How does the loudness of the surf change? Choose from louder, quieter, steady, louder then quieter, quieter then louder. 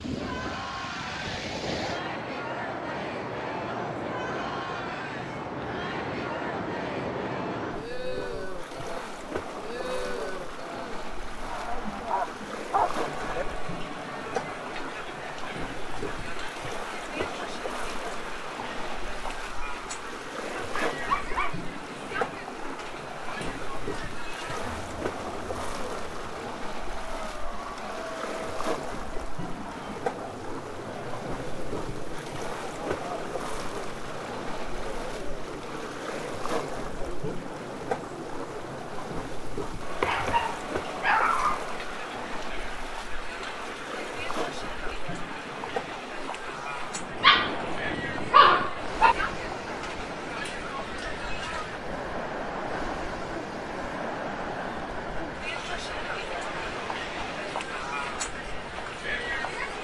steady.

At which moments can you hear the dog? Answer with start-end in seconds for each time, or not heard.
12.1-13.4, 20.4-21.6, 40.0-41.6, 47.1-49.1.